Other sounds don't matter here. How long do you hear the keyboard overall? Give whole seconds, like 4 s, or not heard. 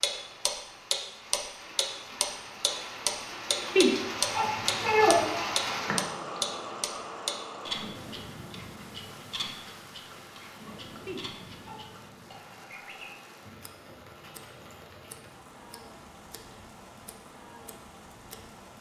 not heard.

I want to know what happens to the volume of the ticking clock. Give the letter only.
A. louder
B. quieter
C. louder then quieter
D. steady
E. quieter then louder
B.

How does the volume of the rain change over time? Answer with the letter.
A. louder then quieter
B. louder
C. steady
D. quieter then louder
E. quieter
A.